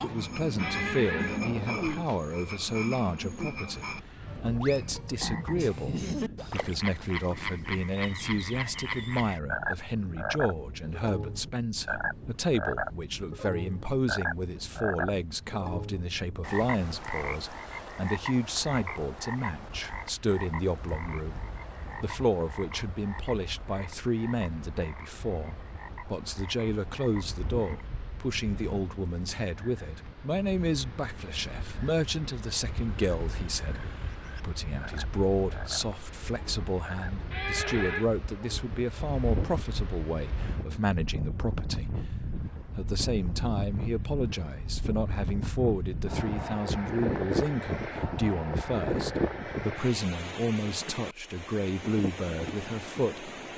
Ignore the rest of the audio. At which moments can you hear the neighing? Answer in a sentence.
The neighing can be heard from 0.6 to 1.4 s and from 37.3 to 38.1 s.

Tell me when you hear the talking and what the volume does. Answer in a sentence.
The talking can be heard from 0.0 to 53.3 s, at a steady volume.